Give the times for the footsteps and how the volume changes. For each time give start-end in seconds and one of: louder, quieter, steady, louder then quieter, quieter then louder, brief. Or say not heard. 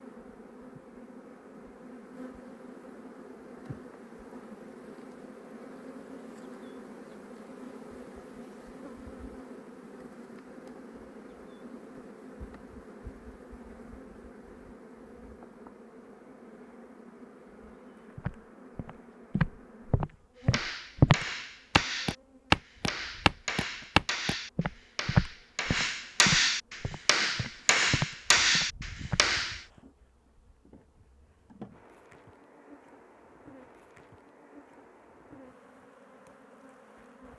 18.1-29.2 louder then quieter.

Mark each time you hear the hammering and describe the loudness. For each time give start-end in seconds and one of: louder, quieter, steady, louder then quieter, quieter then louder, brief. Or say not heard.
20.5-29.6 louder.